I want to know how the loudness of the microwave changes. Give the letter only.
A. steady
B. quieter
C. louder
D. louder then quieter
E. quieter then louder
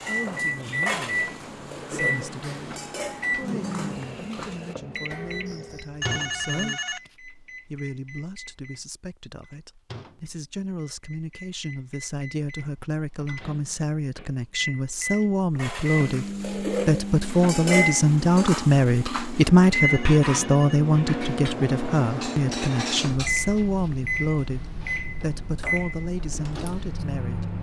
E.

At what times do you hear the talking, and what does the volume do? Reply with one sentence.
The talking can be heard from 0.1 to 27.5 s, getting louder then quieter.